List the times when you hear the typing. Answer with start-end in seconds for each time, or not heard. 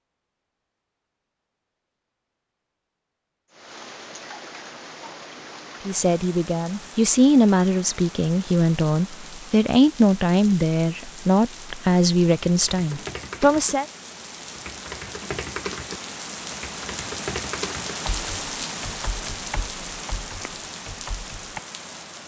12.4-21.6.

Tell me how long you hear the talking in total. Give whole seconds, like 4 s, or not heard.
8 s.